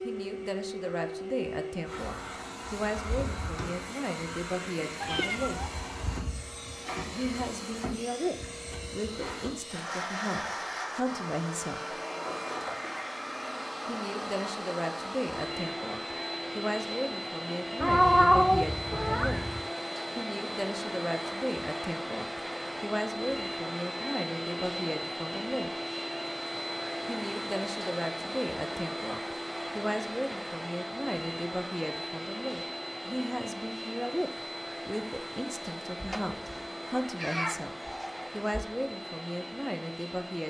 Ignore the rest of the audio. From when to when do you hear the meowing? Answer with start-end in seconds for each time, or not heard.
5.0-5.7, 17.8-19.6, 36.0-38.7.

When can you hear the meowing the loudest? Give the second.
18 s.